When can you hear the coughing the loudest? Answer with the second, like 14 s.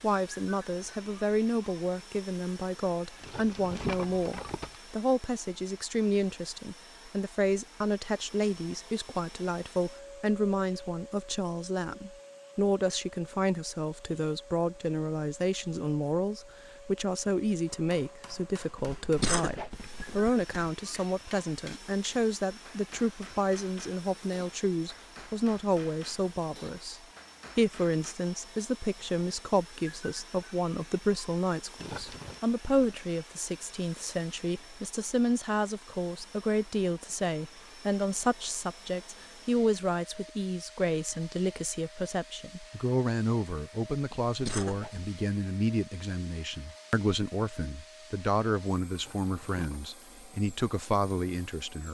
19 s.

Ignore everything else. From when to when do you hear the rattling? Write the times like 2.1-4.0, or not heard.
3.2-4.8, 31.8-32.4, 48.9-50.0.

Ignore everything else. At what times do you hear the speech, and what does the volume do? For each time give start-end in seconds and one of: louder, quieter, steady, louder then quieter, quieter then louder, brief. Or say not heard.
0.0-51.8 steady.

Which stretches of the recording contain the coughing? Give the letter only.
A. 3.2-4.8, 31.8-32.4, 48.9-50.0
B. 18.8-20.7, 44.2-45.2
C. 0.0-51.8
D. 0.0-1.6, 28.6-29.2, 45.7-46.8
B.